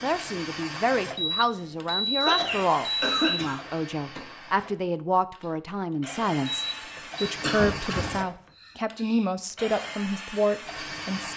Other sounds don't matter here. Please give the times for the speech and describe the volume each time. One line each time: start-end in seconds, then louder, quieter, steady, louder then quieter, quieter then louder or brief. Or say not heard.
0.0-11.3 steady.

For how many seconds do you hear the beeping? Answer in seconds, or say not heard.
3 s.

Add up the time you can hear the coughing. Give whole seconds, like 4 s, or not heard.
4 s.